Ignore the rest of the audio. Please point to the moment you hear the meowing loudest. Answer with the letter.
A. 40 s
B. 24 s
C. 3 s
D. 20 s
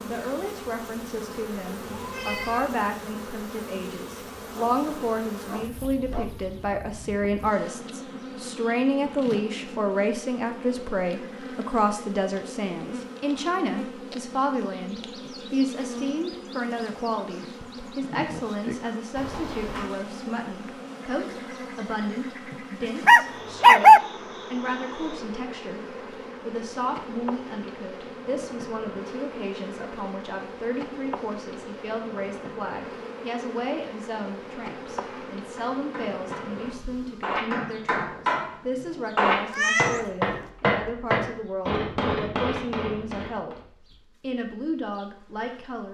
A.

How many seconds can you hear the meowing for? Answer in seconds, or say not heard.
3 s.